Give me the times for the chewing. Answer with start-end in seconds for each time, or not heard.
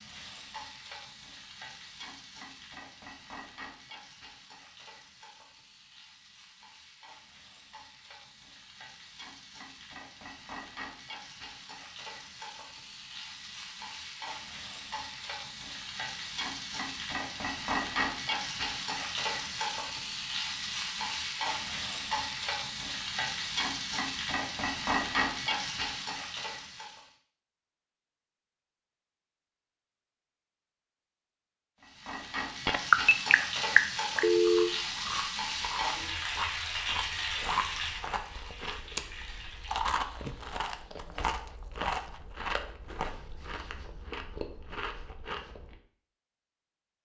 34.4-45.8.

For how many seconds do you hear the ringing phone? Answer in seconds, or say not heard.
2 s.